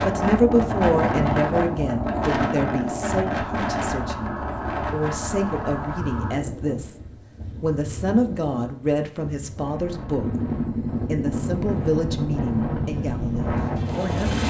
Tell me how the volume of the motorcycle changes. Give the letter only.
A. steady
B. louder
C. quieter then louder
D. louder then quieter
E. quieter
A.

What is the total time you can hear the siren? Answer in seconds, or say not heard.
3 s.